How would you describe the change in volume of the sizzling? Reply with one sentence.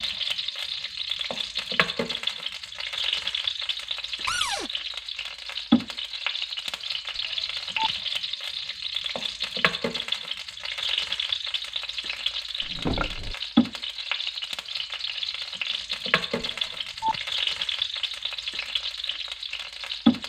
The loudness of the sizzling stays about the same.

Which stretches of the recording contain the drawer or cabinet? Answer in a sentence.
You can hear the drawer or cabinet from 4.2 to 4.7 s and from 12.6 to 13.3 s.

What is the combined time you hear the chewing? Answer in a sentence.
The chewing can't be heard in this clip.